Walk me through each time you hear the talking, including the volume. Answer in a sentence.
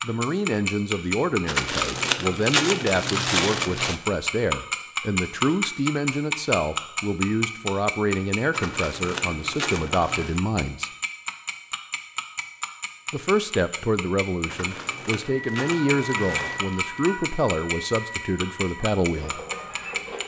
The talking can be heard from 0.0 to 10.9 s, at a steady volume; and from 13.1 to 19.4 s, at a steady volume.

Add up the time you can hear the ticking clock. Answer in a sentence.
The ticking clock can be heard for 20 seconds in total.